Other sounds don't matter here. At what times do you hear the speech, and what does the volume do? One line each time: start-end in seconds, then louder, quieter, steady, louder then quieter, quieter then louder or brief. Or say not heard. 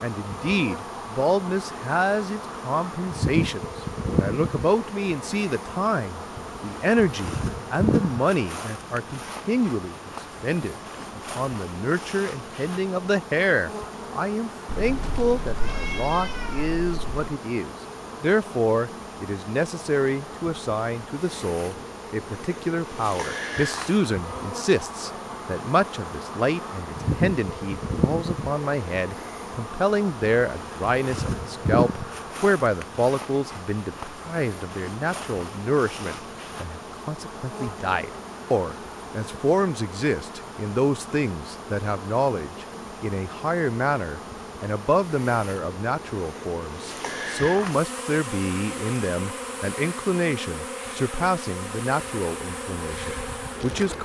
0.0-54.0 steady.